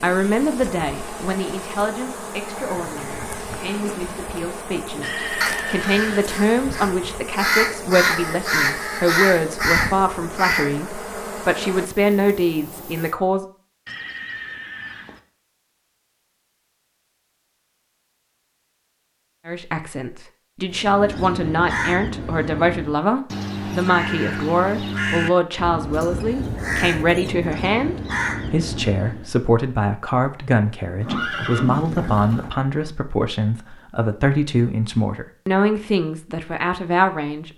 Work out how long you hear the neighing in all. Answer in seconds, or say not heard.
4 s.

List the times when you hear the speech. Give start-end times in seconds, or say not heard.
0.0-13.4, 19.4-37.5.